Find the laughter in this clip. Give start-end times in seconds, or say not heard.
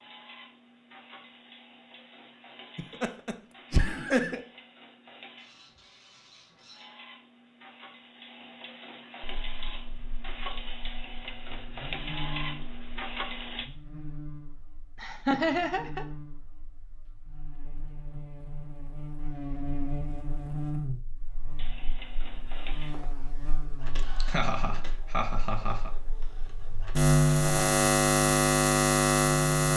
2.8-4.4, 15.0-16.1, 24.2-25.9.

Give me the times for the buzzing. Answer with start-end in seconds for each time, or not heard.
9.2-29.7.